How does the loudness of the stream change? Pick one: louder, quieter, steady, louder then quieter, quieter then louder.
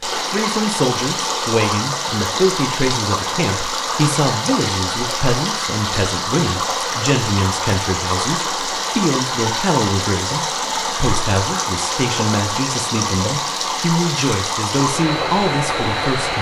steady.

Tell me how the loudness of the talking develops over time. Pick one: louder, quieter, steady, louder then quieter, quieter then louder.
steady.